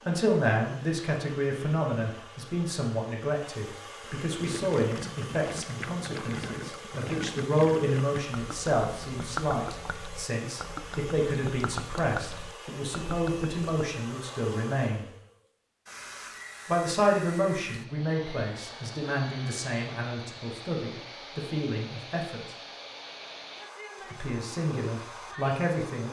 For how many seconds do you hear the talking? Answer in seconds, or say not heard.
23 s.